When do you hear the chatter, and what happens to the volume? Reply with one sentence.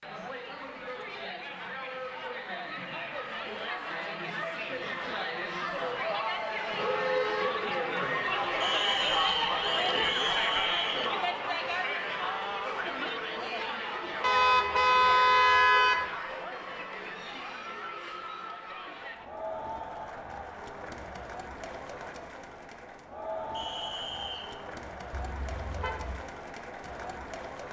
You can hear the chatter from 0.0 to 27.6 s, getting louder then quieter.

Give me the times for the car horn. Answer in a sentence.
You can hear the car horn from 5.8 to 7.5 s, from 14.2 to 16.1 s and from 25.1 to 26.2 s.